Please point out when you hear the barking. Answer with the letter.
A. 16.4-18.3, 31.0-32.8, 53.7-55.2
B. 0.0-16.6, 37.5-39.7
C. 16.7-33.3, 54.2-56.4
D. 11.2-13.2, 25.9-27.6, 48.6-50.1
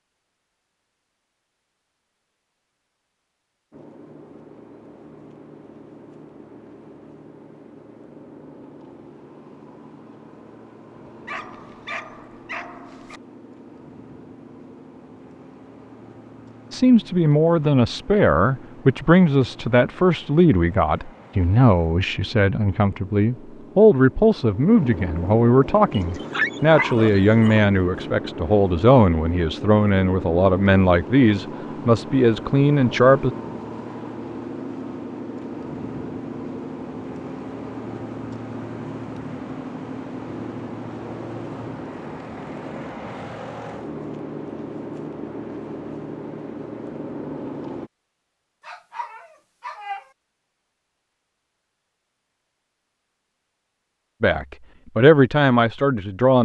D.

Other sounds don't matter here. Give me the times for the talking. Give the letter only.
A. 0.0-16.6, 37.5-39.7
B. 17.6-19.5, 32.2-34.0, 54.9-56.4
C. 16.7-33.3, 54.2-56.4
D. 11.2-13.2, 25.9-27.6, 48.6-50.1
C.